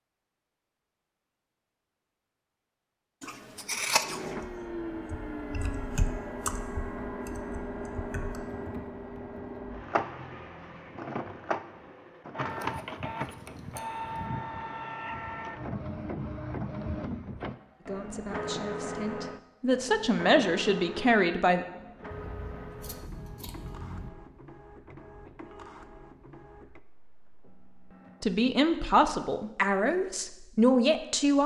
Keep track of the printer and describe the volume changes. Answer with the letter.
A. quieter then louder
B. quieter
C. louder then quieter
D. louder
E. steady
B.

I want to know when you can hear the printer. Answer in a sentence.
The printer can be heard from 4.0 to 28.4 s.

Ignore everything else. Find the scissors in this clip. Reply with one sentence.
The scissors can be heard from 3.2 to 4.3 s, from 12.5 to 14.2 s and from 22.1 to 24.1 s.